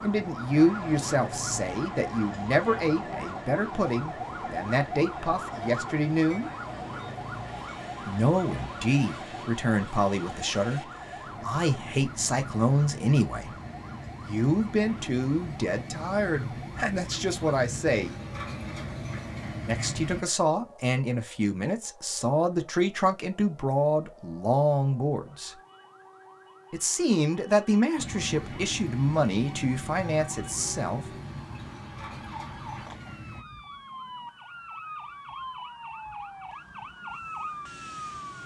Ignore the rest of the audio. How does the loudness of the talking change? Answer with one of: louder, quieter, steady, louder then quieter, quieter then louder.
steady.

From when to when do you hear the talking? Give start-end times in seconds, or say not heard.
0.0-6.5, 8.1-13.5, 14.2-18.1, 19.6-25.6, 26.7-31.1.